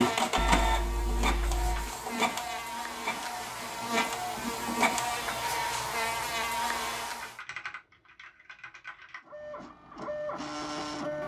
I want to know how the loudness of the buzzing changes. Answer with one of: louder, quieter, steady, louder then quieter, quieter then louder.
louder.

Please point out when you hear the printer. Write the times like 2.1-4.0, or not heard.
0.0-5.4, 9.2-11.2.